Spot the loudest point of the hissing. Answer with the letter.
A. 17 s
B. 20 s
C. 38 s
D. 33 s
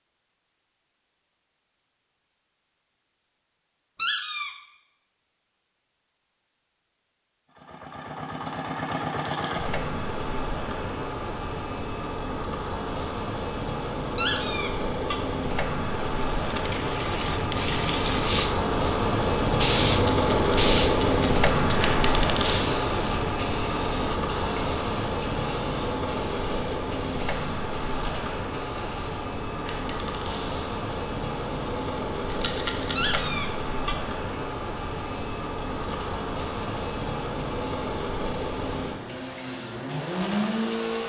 B.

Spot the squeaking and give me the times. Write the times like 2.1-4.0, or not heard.
4.0-4.5, 14.2-15.2, 33.0-34.0.